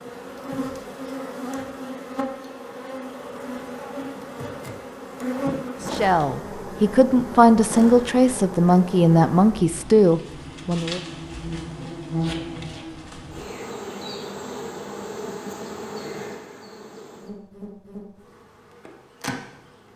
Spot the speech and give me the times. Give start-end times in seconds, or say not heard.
5.9-11.0.